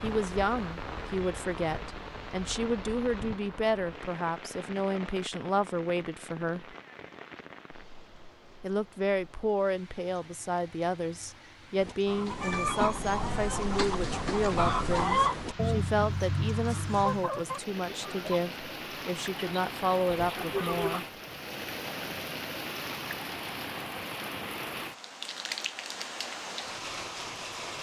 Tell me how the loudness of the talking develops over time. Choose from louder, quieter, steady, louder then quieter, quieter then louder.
steady.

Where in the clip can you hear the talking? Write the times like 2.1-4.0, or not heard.
0.0-6.8, 8.6-21.1.